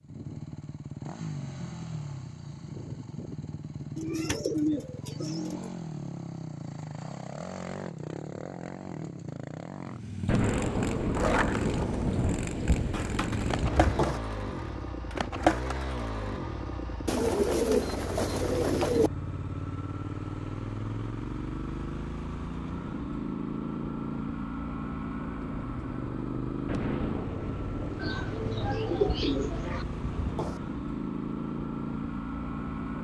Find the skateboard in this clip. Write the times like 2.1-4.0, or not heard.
11.1-16.4.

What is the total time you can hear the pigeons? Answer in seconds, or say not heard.
6 s.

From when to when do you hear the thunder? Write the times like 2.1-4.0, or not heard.
10.2-14.2, 26.6-30.6.